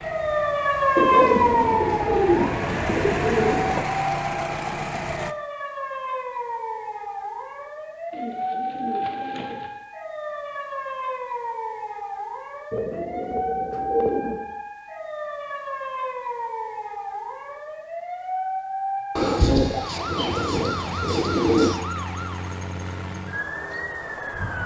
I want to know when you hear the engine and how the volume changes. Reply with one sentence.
The engine can be heard from 0.0 to 5.3 s, getting louder.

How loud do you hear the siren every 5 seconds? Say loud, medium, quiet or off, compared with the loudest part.
loud, medium, medium, medium, medium.